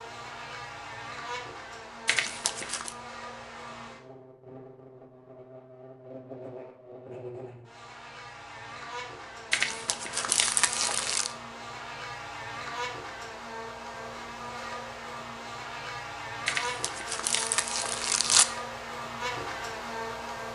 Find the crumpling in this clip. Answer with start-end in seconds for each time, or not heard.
2.0-3.0, 9.5-11.3, 16.4-18.4.